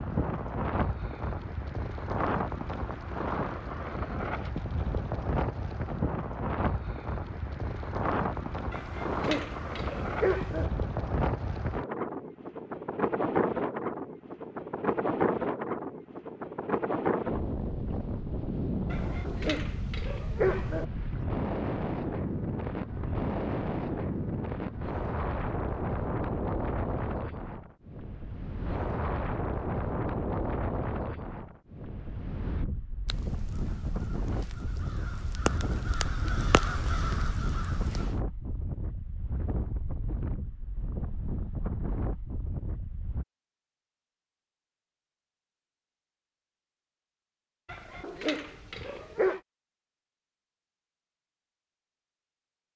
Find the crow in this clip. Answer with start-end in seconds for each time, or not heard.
33.0-38.2.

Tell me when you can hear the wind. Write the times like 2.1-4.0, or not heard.
0.0-43.2.